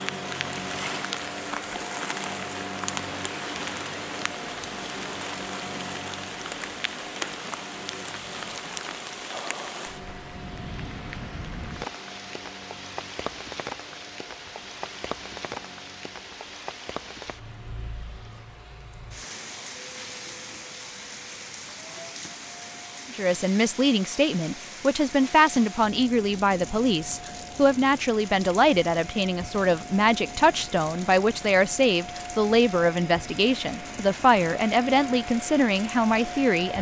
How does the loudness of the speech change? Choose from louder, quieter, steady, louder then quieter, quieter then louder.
steady.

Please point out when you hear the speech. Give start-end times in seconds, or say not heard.
23.1-36.7.